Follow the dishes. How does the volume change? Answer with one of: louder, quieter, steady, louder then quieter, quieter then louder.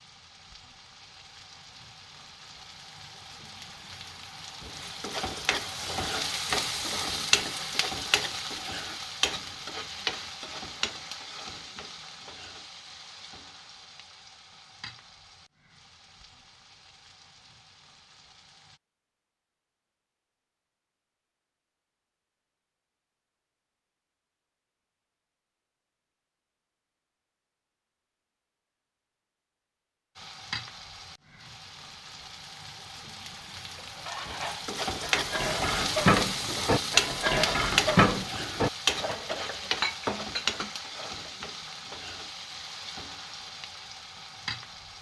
louder then quieter.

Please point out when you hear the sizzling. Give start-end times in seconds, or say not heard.
0.0-18.8, 30.1-44.9.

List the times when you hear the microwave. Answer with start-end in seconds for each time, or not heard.
not heard.